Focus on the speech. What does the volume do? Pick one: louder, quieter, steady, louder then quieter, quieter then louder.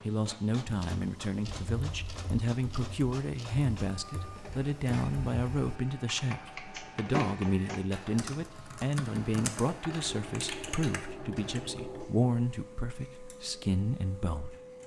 steady.